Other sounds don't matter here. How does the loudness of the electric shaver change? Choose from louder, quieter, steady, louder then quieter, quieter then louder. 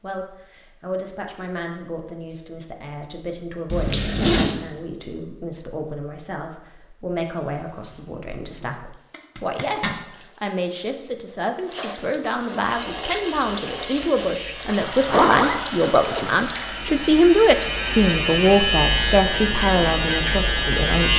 louder.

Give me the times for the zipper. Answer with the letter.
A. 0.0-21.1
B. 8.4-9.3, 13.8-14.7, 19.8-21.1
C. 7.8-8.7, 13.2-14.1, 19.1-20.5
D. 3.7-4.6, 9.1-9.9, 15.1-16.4
D.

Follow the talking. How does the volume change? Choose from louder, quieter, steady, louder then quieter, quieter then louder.
louder.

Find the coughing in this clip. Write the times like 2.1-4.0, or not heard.
not heard.